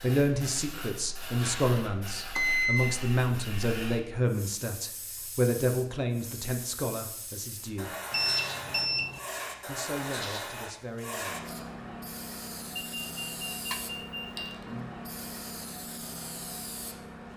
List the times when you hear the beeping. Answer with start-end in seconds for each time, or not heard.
2.4-3.0, 8.1-9.2, 12.8-14.6.